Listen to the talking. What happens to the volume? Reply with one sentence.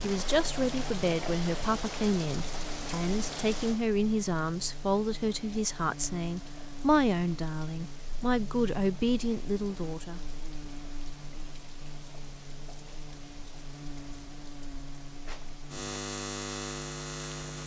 The loudness of the talking stays about the same.